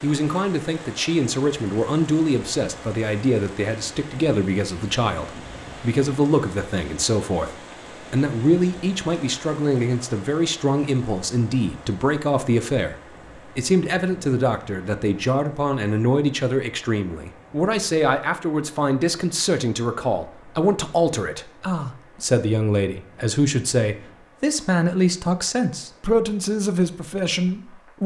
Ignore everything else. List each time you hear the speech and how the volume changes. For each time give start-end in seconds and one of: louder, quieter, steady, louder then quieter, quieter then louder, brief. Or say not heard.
0.0-28.0 steady.